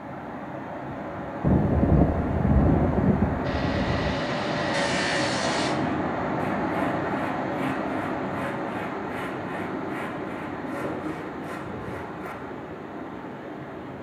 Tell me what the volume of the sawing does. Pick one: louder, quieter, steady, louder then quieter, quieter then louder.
quieter.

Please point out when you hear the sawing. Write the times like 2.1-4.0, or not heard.
3.5-12.3.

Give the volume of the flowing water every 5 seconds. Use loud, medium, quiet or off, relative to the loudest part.
loud, loud, medium.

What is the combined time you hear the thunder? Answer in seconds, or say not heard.
3 s.